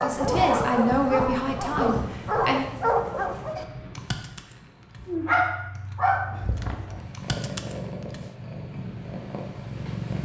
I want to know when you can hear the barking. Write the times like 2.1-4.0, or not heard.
0.0-8.2.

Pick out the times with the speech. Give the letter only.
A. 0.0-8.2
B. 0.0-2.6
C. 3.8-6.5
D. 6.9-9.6
B.